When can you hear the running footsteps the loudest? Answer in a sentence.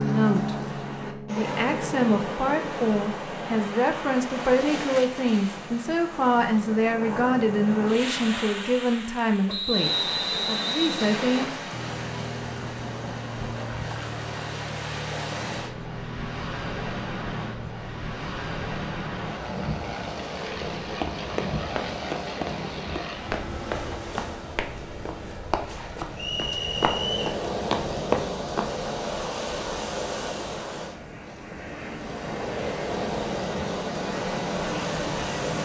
The volume of the running footsteps peaks at 28 seconds.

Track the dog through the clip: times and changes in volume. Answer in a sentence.
You can't hear the dog here.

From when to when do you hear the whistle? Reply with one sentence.
You can hear the whistle from 9.4 to 11.4 s and from 26.1 to 27.2 s.